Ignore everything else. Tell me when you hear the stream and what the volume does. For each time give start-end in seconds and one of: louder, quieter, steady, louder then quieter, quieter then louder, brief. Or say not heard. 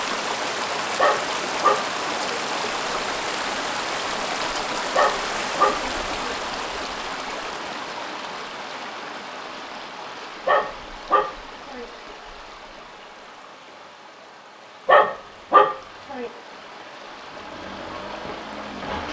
0.0-19.0 quieter.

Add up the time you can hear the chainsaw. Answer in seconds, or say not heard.
2 s.